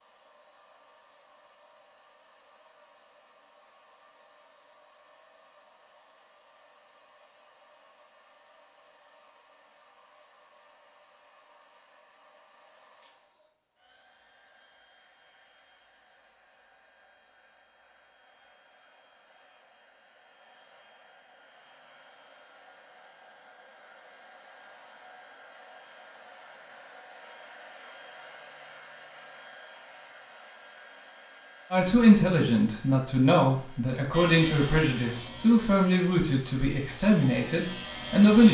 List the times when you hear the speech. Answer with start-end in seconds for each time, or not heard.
31.7-38.4.